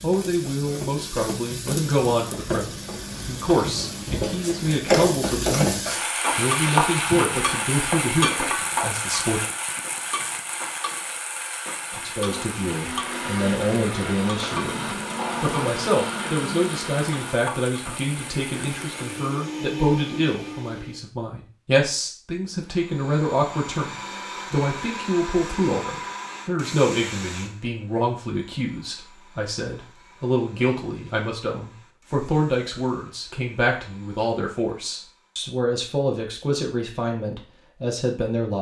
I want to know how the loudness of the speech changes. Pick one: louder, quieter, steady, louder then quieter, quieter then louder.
steady.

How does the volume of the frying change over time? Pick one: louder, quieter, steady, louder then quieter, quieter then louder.
louder then quieter.